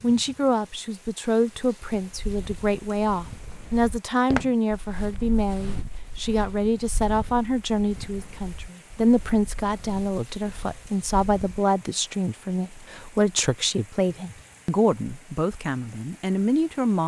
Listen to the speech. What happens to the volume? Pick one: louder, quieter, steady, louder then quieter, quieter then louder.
steady.